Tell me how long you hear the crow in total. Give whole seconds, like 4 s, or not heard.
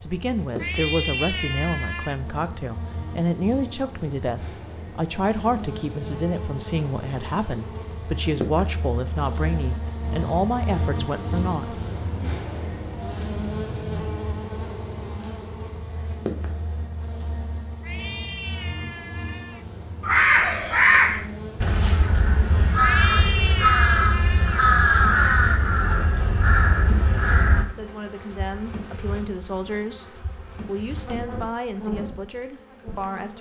8 s.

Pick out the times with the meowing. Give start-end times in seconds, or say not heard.
0.6-2.2, 17.8-19.6, 22.8-24.6.